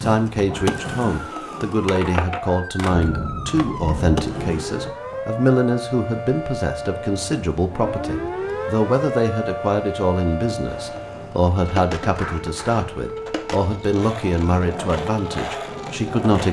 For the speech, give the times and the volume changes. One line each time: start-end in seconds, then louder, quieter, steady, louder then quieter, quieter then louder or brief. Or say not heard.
0.0-16.4 steady.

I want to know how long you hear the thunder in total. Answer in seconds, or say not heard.
2 s.